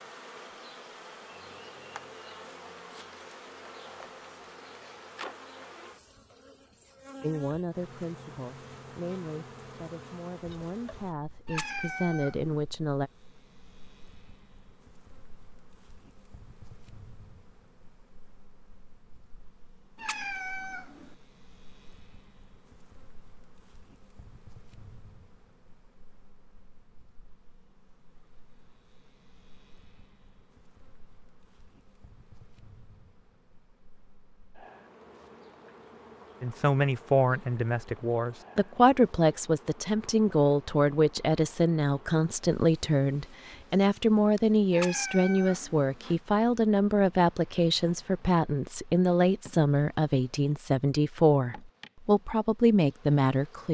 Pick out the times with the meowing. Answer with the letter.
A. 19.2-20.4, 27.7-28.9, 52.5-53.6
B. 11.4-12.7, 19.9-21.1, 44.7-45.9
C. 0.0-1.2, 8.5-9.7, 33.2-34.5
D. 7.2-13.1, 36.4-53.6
B.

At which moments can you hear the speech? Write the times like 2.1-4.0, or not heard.
7.2-13.1, 36.4-53.6.